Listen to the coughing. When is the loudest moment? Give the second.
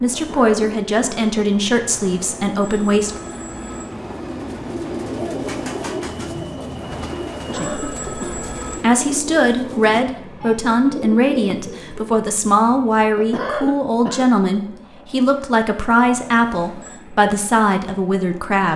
14 s.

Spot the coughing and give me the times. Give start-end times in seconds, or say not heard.
0.1-1.2, 7.3-8.4, 13.2-14.2.